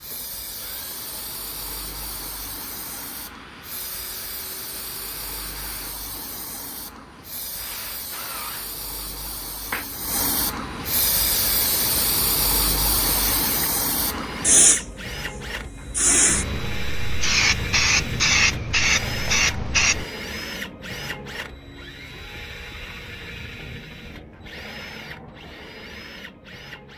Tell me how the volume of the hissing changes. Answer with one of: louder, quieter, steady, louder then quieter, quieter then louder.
louder.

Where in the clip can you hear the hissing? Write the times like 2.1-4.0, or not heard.
0.0-20.1.